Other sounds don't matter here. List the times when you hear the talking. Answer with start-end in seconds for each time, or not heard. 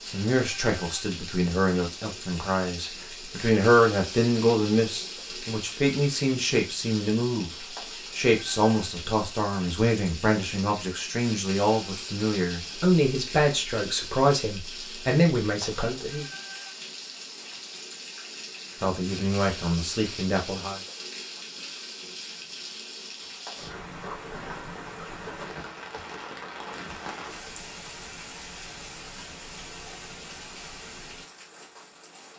0.0-16.2, 18.8-20.8.